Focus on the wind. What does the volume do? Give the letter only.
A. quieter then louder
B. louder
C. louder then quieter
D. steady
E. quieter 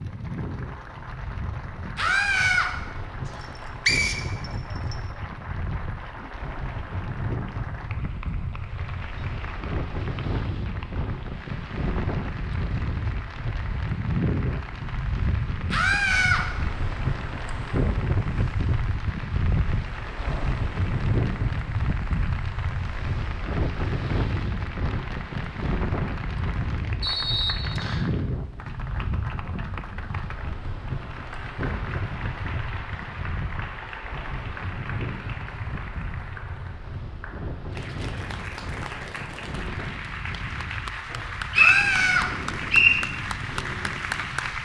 C.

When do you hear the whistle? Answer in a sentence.
You can hear the whistle from 3.4 to 5.0 s, from 27.0 to 28.1 s and from 41.1 to 43.0 s.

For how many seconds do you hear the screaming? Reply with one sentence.
The screaming can be heard for 2 seconds in total.